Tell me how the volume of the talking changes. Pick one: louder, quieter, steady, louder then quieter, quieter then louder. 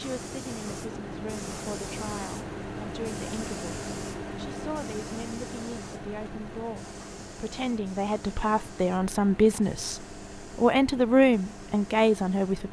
louder.